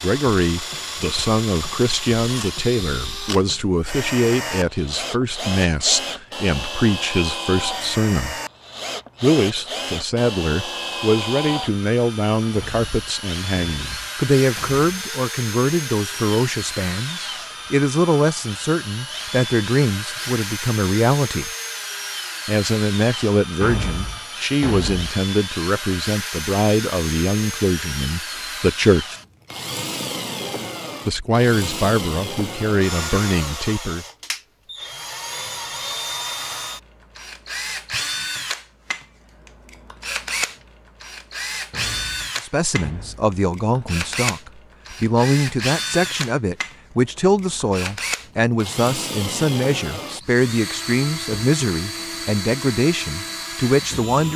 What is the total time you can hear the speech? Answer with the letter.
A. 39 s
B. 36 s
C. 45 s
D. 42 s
D.